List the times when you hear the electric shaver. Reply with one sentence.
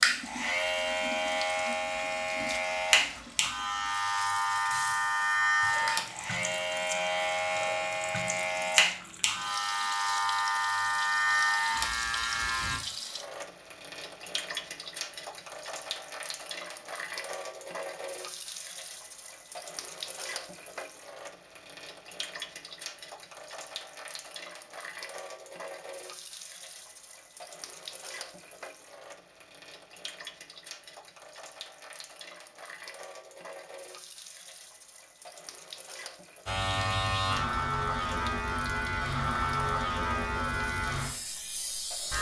You can hear the electric shaver from 0.0 to 12.8 s and from 36.5 to 42.1 s.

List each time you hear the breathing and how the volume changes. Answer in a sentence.
You can't hear the breathing here.